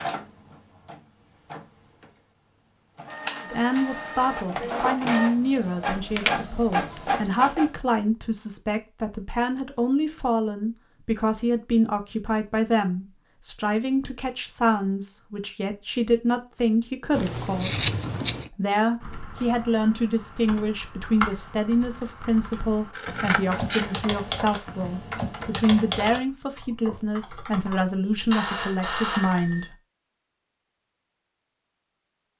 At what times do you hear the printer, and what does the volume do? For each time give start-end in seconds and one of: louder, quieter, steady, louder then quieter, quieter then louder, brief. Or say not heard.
0.0-7.7 louder.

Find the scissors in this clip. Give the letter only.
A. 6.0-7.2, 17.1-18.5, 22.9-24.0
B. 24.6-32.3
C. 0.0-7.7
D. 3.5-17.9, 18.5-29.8
A.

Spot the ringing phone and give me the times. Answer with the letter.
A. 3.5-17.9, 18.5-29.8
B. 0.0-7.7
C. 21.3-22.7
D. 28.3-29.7
D.